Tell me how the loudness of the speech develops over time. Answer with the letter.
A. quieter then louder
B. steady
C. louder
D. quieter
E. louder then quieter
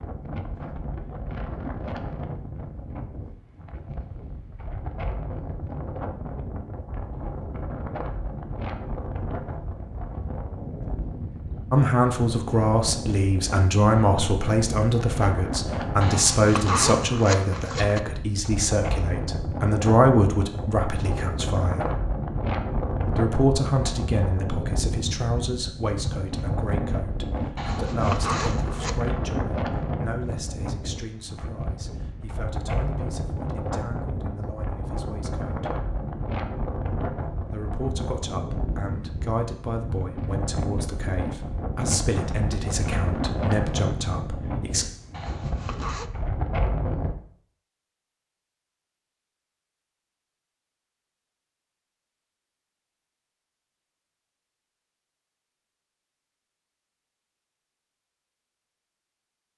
A.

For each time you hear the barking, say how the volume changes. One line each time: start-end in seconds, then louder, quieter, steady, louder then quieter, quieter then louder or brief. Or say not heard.
not heard.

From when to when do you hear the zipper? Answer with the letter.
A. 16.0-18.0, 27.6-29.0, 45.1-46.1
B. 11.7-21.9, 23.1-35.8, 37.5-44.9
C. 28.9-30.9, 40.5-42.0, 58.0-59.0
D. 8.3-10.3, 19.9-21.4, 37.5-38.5
A.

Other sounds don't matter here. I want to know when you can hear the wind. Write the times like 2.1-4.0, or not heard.
0.0-47.1.